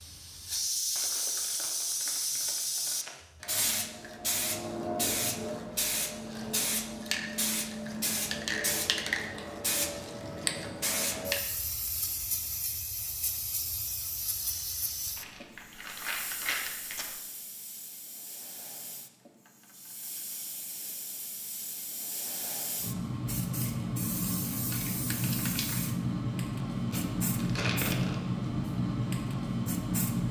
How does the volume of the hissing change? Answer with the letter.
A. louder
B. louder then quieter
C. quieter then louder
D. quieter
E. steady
C.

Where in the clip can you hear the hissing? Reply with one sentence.
You can hear the hissing from 0.0 to 30.2 s.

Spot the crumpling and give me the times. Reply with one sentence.
You can hear the crumpling from 0.9 to 3.2 s, from 15.2 to 17.1 s and from 26.9 to 28.2 s.